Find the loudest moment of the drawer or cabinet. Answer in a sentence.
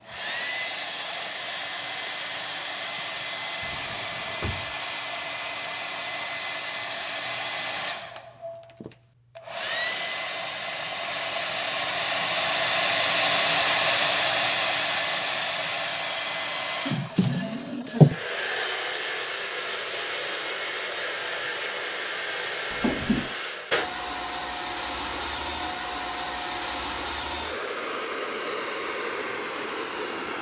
The loudest moment of the drawer or cabinet is at 18 seconds.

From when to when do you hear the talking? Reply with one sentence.
You can't hear the talking here.